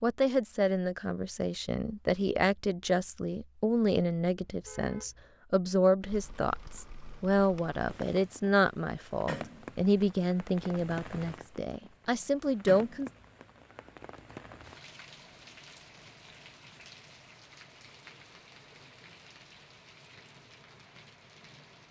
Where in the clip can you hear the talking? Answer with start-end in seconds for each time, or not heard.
0.0-13.1.